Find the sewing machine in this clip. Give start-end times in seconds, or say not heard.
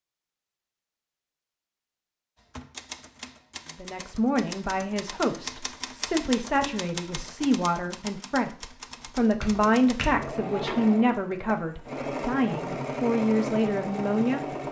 9.5-14.6.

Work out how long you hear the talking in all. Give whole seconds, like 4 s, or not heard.
11 s.